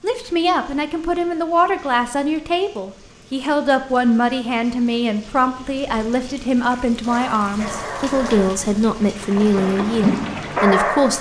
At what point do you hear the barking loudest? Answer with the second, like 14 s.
11 s.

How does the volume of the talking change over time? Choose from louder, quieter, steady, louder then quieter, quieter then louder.
steady.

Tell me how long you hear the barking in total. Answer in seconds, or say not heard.
4 s.